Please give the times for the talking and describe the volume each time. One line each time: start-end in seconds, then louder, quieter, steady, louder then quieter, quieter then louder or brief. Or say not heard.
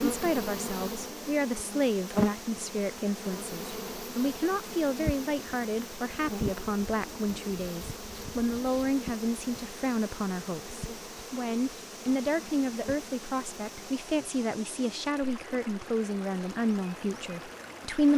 0.0-18.1 steady.